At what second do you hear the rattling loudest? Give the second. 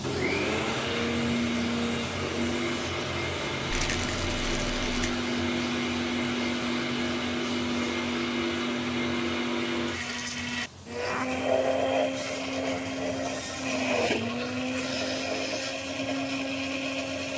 4 s.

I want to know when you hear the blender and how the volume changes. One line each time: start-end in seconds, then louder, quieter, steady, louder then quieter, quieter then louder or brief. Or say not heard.
0.0-17.3 steady.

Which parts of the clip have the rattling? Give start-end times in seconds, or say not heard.
3.7-5.1.